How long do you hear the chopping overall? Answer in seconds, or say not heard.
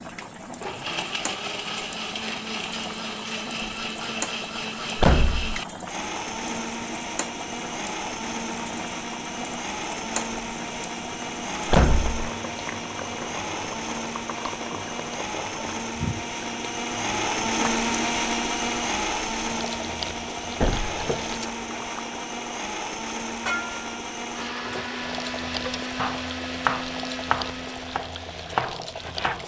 4 s.